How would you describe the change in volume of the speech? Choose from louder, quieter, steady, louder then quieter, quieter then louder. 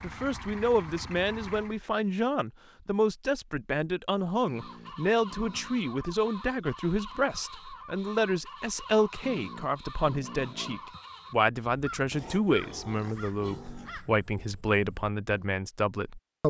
steady.